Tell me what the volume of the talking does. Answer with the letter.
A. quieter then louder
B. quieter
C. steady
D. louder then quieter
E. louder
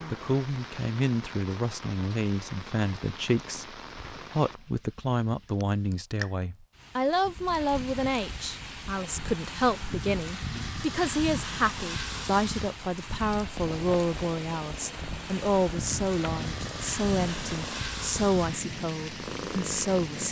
C.